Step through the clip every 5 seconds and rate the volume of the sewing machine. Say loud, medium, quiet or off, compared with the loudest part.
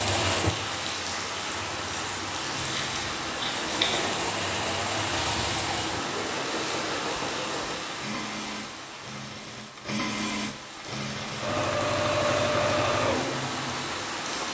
loud, medium, loud.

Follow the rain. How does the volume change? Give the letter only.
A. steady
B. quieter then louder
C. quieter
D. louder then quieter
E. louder
B.